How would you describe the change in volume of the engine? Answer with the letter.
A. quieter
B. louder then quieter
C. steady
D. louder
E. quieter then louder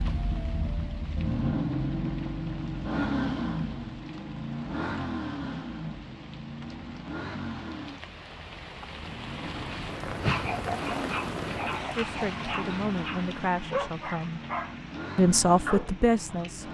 A.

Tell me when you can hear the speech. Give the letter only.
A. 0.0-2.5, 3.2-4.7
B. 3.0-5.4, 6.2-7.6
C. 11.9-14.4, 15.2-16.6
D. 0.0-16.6
C.